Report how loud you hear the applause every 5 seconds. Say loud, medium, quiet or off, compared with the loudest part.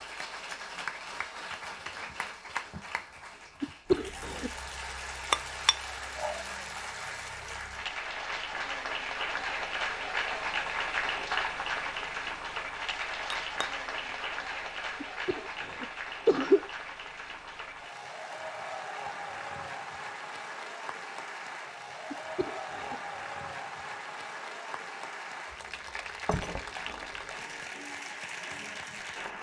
medium, loud, loud, medium, medium, medium.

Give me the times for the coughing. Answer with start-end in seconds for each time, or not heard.
3.6-4.5, 15.0-16.6, 22.1-22.9.